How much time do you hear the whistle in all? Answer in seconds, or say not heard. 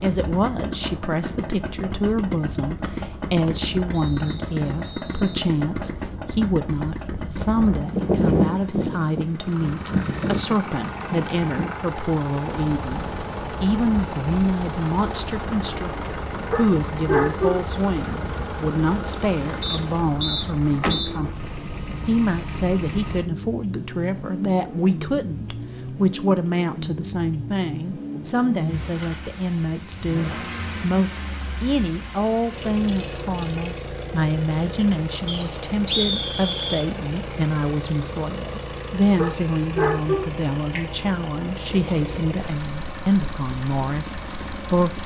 6 s.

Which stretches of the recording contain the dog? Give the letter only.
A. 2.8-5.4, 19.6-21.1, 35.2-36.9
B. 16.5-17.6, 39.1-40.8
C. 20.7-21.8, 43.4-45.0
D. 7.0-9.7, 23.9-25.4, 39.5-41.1
B.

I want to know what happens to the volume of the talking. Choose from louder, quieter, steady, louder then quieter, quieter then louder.
steady.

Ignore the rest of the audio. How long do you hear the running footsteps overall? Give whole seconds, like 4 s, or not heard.
not heard.